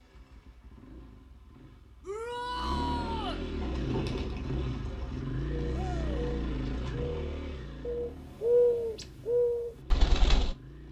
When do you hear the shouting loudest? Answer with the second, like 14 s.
3 s.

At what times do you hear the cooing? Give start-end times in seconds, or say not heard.
3.6-10.6.